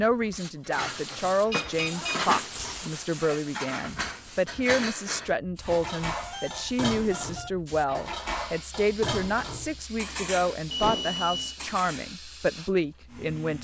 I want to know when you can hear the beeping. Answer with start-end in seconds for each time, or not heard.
1.2-2.3, 5.7-7.5, 10.7-11.6.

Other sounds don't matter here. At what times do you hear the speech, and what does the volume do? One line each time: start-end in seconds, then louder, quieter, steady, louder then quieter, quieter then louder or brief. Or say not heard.
0.0-13.5 steady.